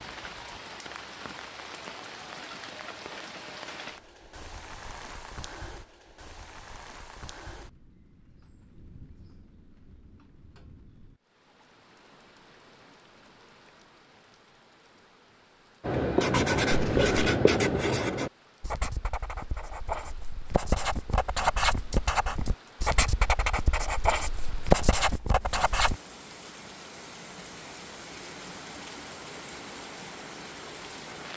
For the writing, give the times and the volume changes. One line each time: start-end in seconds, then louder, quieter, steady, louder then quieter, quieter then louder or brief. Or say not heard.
15.8-25.9 quieter then louder.